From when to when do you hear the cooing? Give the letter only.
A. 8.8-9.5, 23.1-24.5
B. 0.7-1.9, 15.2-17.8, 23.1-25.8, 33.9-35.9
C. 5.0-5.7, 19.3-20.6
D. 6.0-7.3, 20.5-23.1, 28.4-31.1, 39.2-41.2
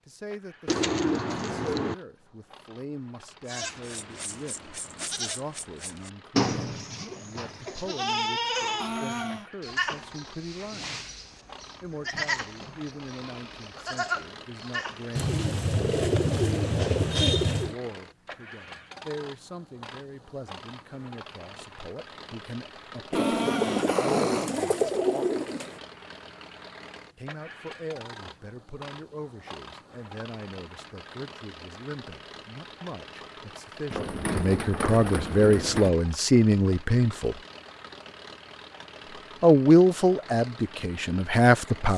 B.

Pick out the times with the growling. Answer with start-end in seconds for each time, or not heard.
8.8-9.5, 23.1-24.5.